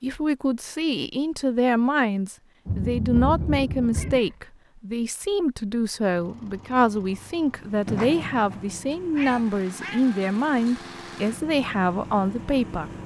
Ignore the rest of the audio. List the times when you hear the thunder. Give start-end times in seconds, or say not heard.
2.6-4.2.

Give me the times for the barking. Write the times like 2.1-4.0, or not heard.
not heard.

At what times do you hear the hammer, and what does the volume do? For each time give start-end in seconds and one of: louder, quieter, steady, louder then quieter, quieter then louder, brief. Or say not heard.
not heard.